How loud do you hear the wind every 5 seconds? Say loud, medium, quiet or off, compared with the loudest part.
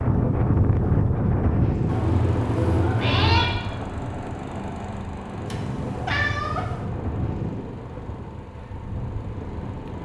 loud, medium.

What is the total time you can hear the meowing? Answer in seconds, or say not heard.
3 s.